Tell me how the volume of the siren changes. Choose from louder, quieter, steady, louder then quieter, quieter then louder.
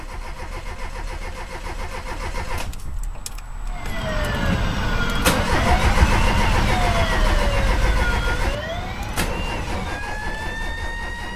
quieter.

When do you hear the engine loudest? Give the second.
6 s.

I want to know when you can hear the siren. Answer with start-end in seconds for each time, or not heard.
3.7-11.3.